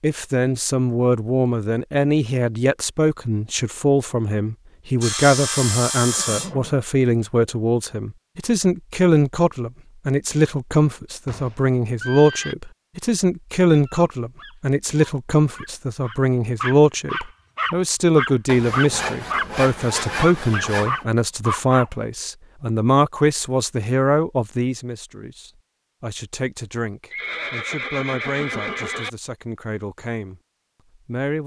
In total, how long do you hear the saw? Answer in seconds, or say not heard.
4 s.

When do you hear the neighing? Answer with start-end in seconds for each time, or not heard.
6.1-6.8, 11.2-12.6, 27.1-29.1.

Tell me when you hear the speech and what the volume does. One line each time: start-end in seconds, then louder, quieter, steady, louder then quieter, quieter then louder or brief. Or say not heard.
0.0-31.4 quieter.